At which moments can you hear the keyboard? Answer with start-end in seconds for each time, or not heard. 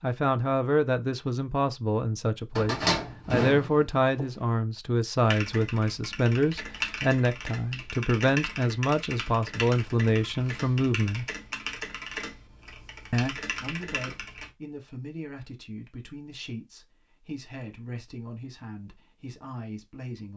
5.2-14.5.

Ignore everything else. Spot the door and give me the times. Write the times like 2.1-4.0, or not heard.
2.5-4.2.